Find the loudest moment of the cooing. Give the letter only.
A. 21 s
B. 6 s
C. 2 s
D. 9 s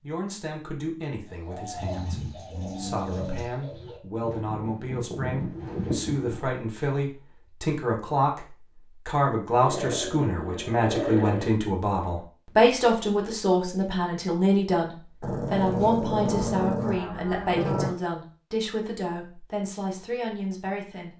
B.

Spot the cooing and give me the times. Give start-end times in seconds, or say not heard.
1.3-6.5.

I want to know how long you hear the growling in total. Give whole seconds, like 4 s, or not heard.
6 s.